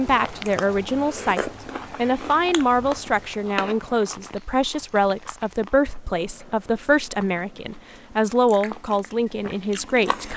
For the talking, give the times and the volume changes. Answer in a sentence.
You can hear the talking from 0.0 to 10.3 s, at a steady volume.